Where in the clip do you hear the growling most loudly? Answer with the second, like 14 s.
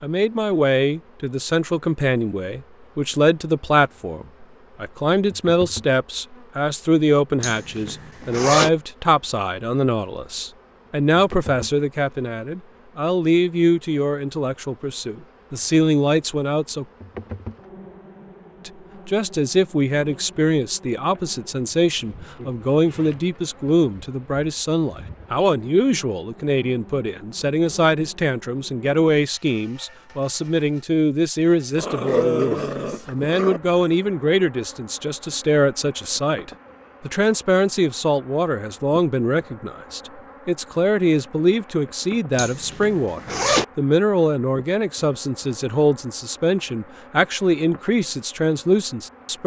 32 s.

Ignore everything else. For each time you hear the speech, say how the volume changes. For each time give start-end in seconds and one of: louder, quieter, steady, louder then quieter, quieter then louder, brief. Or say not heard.
0.0-16.9 steady
18.6-49.4 steady.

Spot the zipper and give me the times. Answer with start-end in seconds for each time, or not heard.
7.4-8.7, 22.1-23.3, 42.4-43.6.